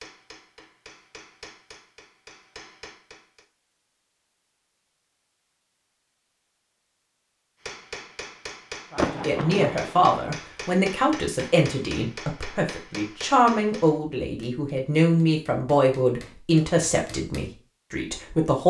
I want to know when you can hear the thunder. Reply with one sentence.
You can hear the thunder from 8.9 to 10.2 s.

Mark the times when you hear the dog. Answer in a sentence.
You can't hear the dog here.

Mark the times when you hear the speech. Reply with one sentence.
You can hear the speech from 8.9 to 18.6 s.